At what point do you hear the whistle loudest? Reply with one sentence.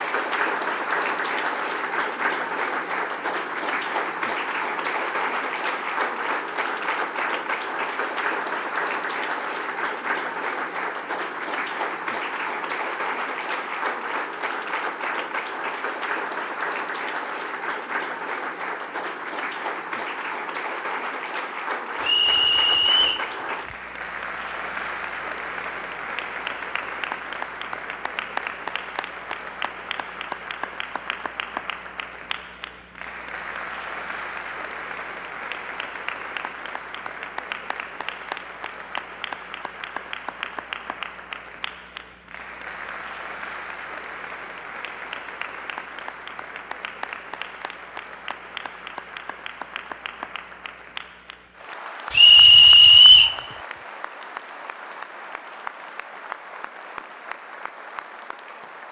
The loudest moment of the whistle is at 53 seconds.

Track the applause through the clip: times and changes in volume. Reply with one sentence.
You can hear the applause from 0.0 to 58.8 s, getting quieter.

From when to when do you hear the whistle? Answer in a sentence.
You can hear the whistle from 22.0 to 23.2 s and from 52.1 to 53.4 s.